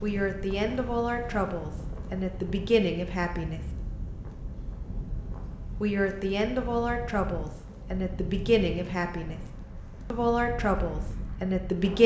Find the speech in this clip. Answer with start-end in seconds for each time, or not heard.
0.0-3.6, 5.8-9.4, 10.1-12.0.